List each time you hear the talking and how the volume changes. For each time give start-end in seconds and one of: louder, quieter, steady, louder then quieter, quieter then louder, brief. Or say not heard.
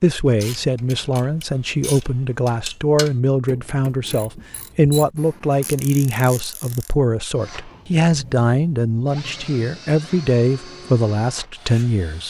0.0-12.2 steady.